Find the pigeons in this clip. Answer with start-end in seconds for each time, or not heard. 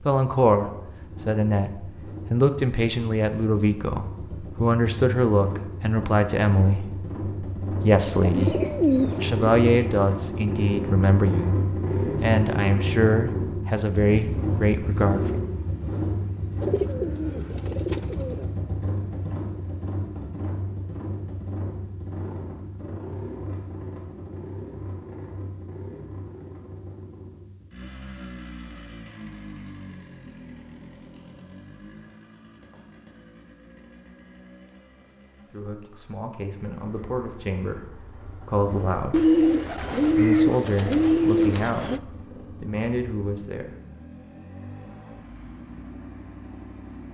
8.1-9.8, 16.6-18.4, 39.1-42.0.